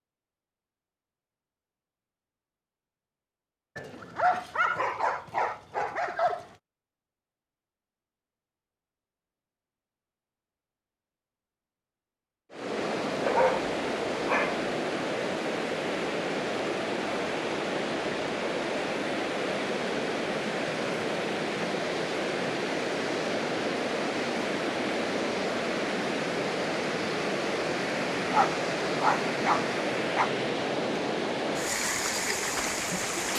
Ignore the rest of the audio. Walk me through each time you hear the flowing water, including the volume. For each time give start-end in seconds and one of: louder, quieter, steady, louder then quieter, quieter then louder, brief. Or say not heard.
12.5-33.3 steady.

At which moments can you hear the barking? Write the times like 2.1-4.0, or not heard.
3.8-6.5, 13.2-14.7, 28.3-30.3.